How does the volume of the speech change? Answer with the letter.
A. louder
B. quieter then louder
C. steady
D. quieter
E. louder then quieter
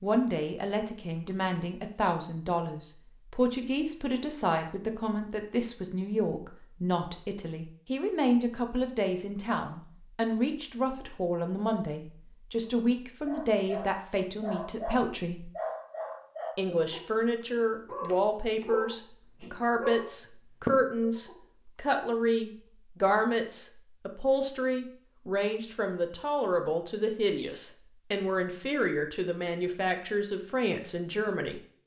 C.